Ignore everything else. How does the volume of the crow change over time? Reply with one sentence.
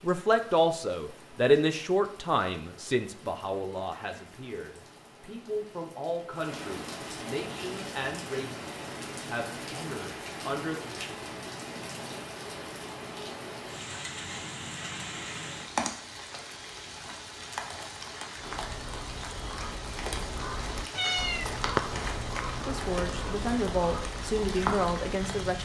The loudness of the crow goes up, then down.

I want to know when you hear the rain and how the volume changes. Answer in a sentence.
The rain can be heard from 0.0 to 25.6 s, getting louder.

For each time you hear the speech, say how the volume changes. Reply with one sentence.
You can hear the speech from 0.0 to 10.8 s, getting quieter; and briefly from 22.6 to 25.6 s.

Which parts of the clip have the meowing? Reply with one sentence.
You can hear the meowing from 20.9 to 21.6 s.